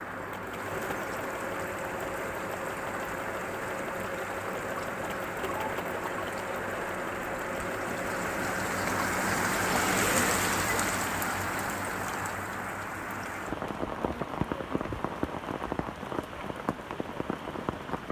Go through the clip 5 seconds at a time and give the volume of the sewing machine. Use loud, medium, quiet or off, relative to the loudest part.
loud, loud, off, off.